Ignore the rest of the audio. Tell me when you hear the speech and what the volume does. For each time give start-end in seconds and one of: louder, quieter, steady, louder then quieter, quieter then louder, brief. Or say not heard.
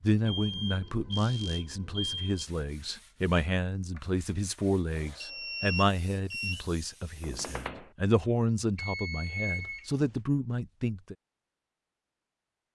0.0-11.2 steady.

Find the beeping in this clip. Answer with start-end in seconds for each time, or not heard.
0.2-2.5, 5.0-6.7, 8.8-10.2.